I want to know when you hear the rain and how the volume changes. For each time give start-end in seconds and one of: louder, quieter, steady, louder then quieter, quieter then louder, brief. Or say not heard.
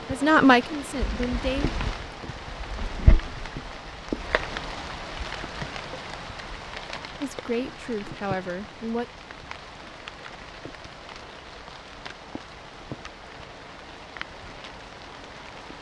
0.0-15.7 quieter.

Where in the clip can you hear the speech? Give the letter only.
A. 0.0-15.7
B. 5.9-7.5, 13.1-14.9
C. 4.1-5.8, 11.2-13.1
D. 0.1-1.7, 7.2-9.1
D.